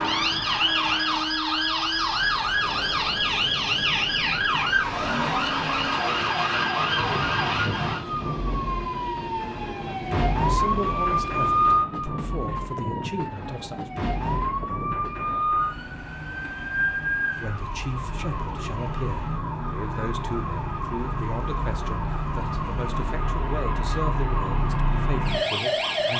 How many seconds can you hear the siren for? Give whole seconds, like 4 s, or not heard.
26 s.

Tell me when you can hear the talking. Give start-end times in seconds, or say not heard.
10.4-13.9, 17.4-26.1.